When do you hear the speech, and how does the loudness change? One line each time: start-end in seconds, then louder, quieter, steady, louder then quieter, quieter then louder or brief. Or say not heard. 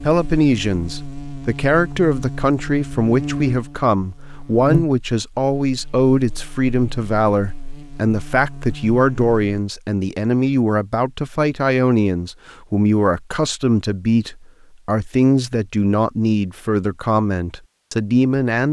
0.0-18.6 steady.